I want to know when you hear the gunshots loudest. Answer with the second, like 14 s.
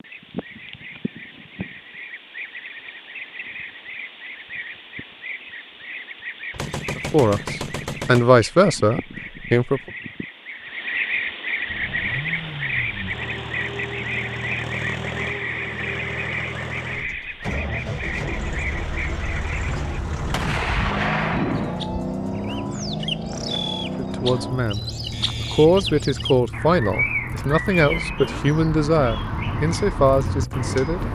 21 s.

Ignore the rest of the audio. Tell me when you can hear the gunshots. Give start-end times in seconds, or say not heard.
6.5-8.3, 20.3-21.8.